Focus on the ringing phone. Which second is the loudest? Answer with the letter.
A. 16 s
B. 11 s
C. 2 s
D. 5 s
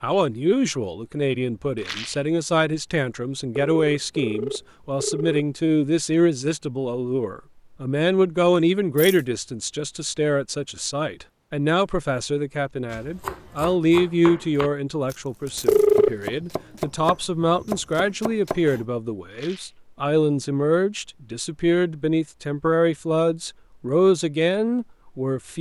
A.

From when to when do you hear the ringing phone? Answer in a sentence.
The ringing phone can be heard from 3.5 to 5.5 s and from 15.7 to 16.1 s.